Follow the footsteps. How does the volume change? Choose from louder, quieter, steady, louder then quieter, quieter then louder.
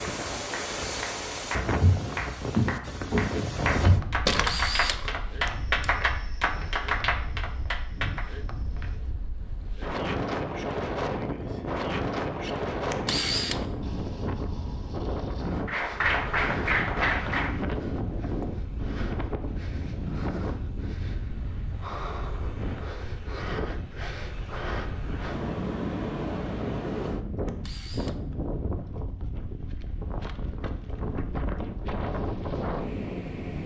quieter.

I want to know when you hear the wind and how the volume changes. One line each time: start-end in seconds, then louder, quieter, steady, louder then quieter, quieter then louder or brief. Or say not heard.
0.0-33.6 steady.